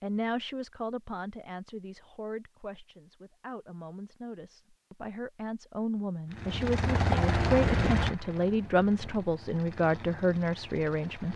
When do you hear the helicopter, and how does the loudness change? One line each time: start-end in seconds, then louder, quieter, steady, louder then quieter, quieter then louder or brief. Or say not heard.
6.3-11.3 quieter.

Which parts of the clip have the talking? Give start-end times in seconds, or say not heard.
0.0-11.3.